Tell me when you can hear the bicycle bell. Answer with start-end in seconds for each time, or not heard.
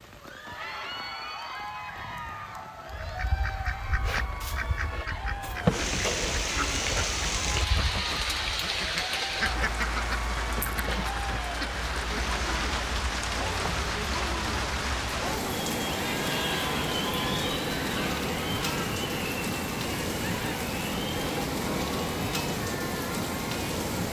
not heard.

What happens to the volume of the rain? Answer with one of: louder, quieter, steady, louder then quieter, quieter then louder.
louder.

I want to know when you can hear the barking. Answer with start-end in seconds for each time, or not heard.
not heard.